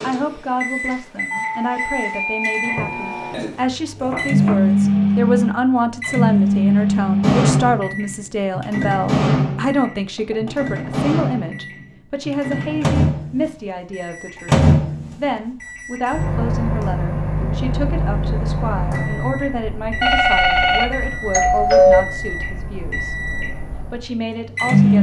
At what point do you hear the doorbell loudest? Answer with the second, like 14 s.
22 s.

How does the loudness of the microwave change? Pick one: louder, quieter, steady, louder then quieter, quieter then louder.
quieter.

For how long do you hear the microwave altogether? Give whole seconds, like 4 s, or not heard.
25 s.